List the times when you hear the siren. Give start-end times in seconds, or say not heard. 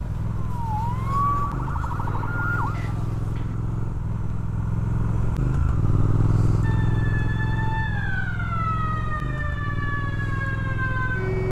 0.0-3.5, 6.6-11.4.